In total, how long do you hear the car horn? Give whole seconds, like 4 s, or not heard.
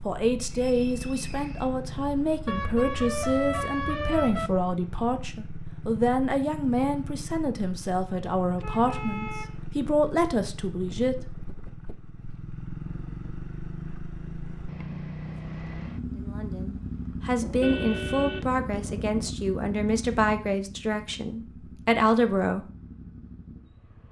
5 s.